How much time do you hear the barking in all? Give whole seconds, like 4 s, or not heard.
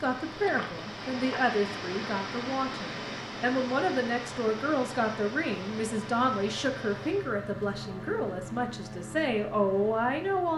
not heard.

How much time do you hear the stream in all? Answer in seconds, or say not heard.
7 s.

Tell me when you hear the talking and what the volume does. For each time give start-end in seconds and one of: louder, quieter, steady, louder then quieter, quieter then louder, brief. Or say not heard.
0.0-10.5 steady.